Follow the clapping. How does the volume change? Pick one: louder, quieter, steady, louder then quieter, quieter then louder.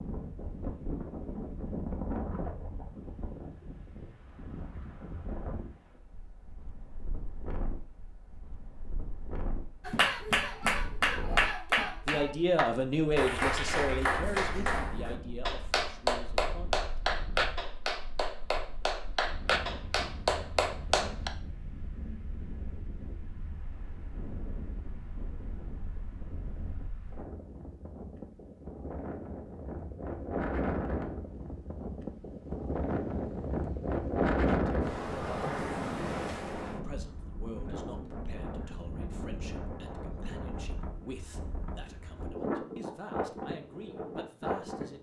steady.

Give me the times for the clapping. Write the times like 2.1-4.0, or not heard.
9.8-21.3.